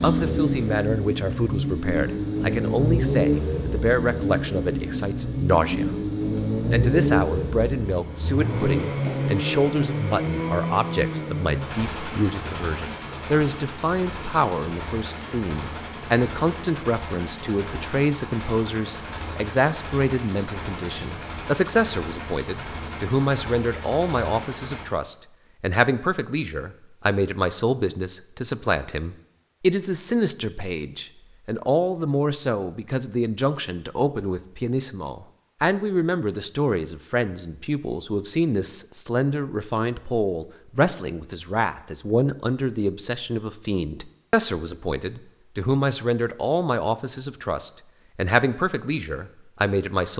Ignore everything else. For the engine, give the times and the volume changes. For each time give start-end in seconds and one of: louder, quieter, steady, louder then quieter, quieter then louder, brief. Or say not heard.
0.0-24.9 quieter.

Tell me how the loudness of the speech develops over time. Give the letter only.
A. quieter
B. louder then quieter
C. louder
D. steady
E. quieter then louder
D.